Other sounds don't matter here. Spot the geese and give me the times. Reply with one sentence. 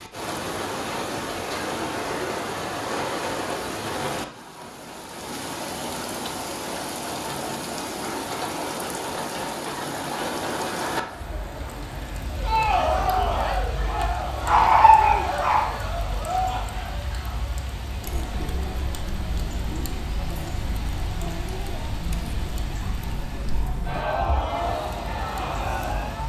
You can't hear the geese here.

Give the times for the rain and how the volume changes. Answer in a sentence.
The rain can be heard from 0.0 to 26.2 s, getting quieter.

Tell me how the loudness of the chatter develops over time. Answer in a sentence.
The volume of the chatter goes down, then up.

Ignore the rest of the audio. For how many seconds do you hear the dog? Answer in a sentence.
You can hear the dog for 2 seconds altogether.